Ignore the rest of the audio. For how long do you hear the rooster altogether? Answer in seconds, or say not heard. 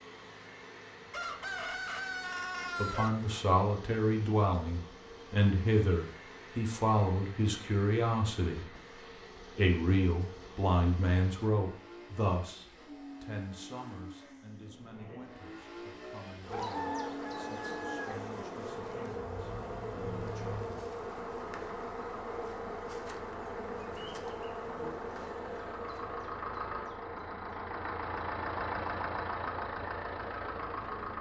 4 s.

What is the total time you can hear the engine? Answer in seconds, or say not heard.
31 s.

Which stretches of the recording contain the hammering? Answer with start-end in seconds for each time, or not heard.
not heard.